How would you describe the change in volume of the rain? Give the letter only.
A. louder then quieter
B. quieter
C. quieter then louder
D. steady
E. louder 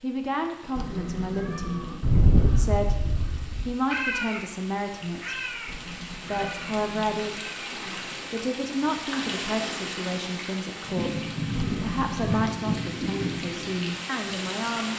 E.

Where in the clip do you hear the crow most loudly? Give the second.
2 s.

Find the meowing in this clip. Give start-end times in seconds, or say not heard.
0.8-2.0, 5.7-7.5, 11.6-12.4.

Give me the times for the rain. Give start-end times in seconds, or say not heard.
0.0-14.9.